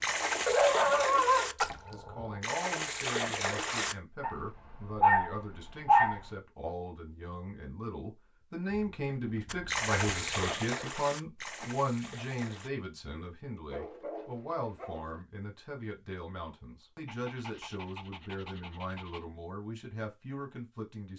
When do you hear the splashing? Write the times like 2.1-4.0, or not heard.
0.0-4.0, 9.4-12.7.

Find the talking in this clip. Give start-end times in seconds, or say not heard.
1.9-21.1.